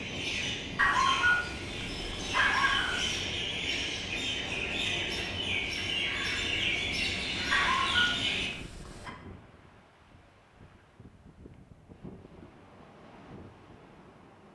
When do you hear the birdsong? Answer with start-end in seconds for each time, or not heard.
0.0-8.5.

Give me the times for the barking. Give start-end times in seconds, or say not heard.
0.8-3.2, 7.5-9.1.